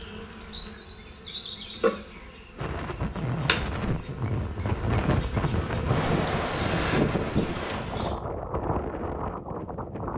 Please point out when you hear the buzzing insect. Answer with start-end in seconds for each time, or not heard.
0.0-8.2.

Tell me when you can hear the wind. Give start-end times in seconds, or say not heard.
2.5-10.1.